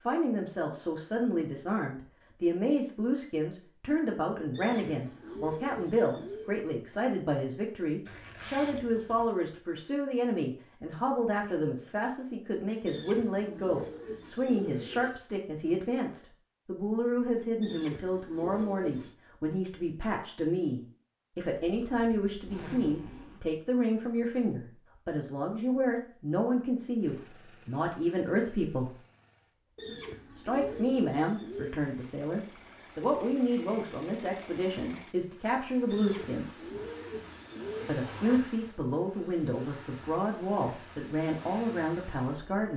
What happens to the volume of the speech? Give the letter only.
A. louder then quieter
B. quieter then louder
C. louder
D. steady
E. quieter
D.